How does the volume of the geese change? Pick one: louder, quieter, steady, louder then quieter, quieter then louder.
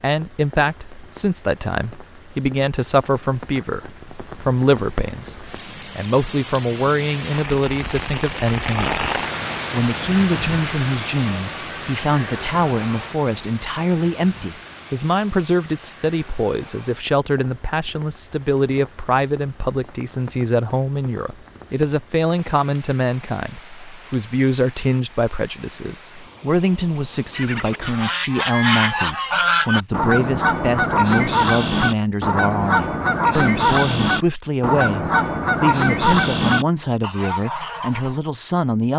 steady.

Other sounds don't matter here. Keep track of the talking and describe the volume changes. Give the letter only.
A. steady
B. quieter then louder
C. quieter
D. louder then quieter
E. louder
A.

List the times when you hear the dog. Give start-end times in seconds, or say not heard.
not heard.